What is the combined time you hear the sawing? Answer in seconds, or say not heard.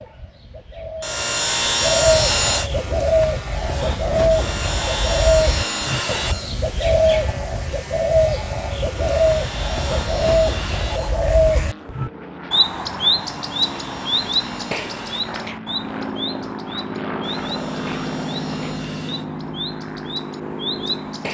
10 s.